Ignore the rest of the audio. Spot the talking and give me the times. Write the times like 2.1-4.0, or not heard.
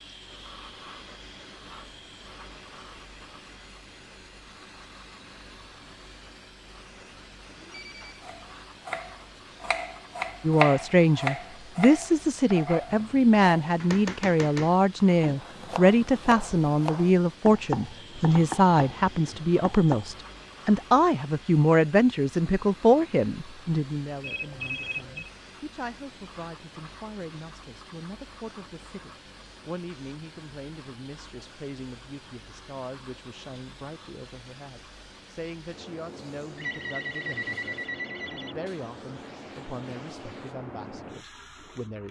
10.4-42.0.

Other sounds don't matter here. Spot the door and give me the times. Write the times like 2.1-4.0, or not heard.
not heard.